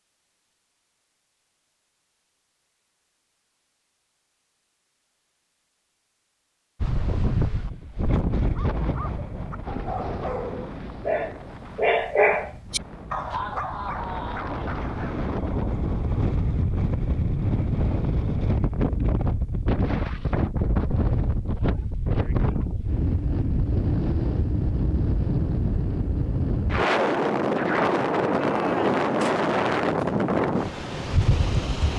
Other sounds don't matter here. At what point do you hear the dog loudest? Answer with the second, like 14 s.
12 s.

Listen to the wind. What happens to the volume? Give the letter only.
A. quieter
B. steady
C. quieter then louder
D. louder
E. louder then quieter
D.